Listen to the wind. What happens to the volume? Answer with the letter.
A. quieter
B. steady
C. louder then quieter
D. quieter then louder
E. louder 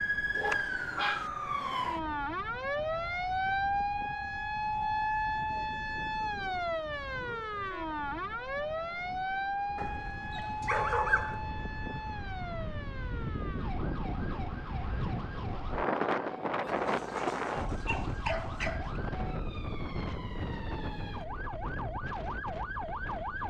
C.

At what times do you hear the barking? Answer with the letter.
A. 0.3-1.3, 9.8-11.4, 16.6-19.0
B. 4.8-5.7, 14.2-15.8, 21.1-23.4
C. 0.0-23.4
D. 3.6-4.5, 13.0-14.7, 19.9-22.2
A.